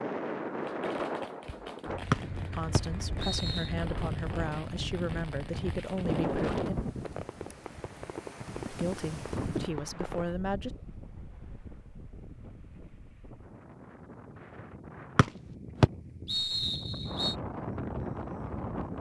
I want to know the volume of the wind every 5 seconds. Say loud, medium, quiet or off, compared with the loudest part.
loud, loud, quiet, loud.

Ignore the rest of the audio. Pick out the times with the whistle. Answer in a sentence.
You can hear the whistle from 2.1 to 3.7 s and from 15.2 to 17.4 s.